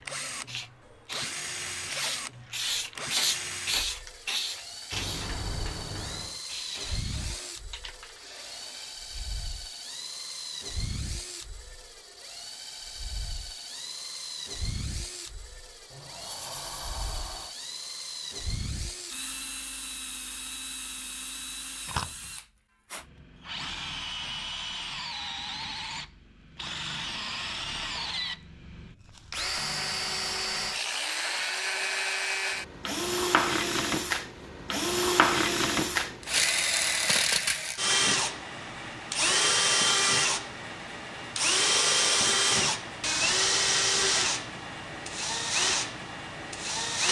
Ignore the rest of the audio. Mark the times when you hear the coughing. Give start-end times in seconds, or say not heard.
not heard.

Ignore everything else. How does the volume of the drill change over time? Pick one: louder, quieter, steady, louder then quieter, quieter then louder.
louder.